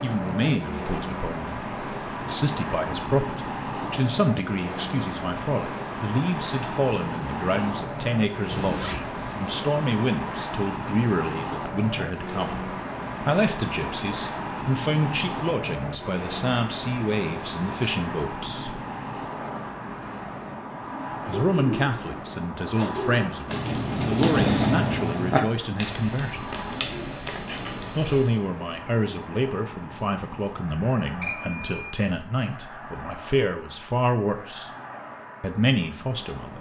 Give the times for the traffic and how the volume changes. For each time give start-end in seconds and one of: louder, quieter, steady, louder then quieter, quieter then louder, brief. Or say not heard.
0.0-36.5 quieter.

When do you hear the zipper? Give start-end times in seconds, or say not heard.
8.5-9.5.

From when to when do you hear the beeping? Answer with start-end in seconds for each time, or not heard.
31.2-31.9.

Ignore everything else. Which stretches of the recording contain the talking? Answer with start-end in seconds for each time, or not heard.
0.0-18.8, 21.2-26.5, 27.9-34.7, 35.4-36.5.